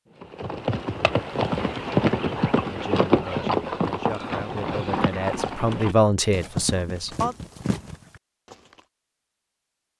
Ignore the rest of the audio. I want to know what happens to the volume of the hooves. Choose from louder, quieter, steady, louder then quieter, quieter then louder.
quieter.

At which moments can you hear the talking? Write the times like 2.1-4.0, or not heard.
2.6-7.3.